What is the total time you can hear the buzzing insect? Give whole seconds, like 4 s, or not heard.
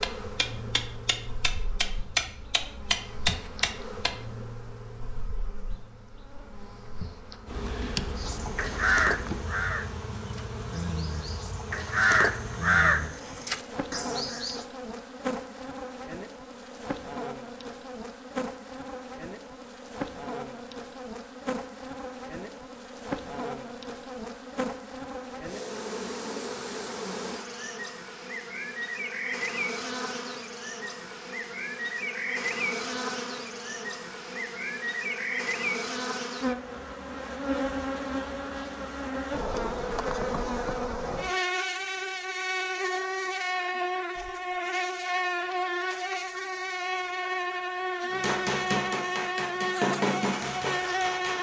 51 s.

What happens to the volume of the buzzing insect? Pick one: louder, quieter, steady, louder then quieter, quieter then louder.
louder.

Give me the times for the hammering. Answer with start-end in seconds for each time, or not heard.
0.0-4.2, 48.1-51.3.